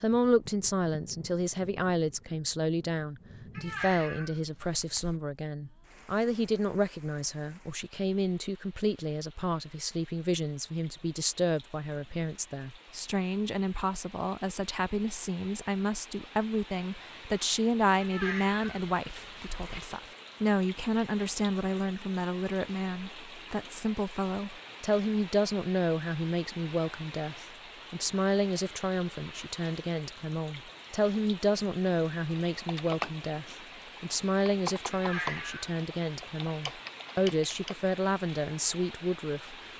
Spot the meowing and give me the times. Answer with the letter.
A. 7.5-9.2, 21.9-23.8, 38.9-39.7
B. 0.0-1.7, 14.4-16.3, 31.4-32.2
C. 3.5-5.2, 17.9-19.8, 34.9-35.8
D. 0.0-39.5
C.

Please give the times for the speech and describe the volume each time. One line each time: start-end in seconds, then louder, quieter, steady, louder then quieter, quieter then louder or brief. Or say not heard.
0.0-39.5 steady.